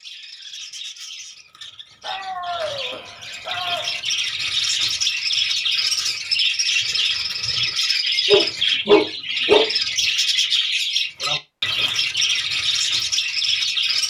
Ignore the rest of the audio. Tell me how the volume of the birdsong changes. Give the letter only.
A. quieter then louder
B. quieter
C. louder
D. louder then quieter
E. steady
C.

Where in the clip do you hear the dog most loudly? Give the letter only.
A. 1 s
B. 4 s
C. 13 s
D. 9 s
D.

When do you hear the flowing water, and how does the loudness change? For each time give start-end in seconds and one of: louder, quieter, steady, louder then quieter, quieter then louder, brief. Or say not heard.
not heard.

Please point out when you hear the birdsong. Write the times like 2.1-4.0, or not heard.
0.0-14.0.